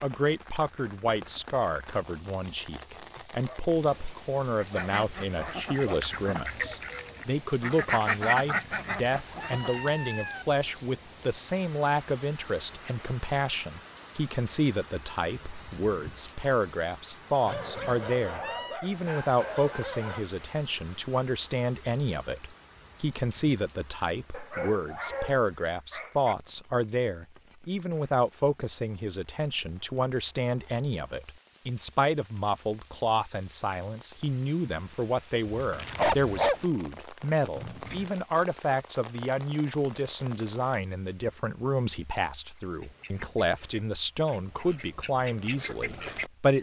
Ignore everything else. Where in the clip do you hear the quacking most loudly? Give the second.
8 s.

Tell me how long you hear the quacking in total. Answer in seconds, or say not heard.
9 s.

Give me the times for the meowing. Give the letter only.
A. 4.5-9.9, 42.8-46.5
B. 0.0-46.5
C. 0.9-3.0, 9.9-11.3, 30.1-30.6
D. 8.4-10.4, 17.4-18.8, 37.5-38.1
D.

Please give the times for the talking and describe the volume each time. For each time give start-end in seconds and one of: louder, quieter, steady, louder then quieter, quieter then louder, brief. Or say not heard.
0.0-46.5 steady.